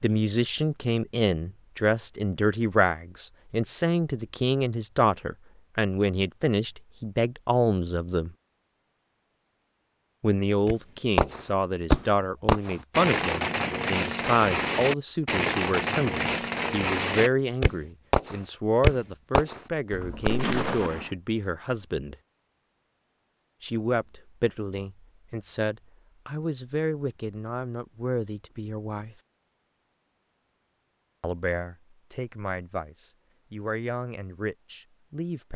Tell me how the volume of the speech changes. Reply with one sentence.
The loudness of the speech goes down.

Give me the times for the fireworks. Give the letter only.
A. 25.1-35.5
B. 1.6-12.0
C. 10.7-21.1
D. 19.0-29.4
C.